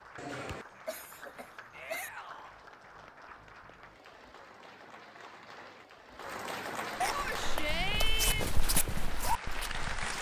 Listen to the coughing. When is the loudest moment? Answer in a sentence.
The volume of the coughing peaks at 7 seconds.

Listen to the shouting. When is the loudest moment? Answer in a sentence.
The volume of the shouting peaks at 8 seconds.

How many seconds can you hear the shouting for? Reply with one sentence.
You can hear the shouting for 2 seconds altogether.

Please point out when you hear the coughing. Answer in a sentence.
The coughing can be heard from 0.1 to 2.1 s and from 7.0 to 8.2 s.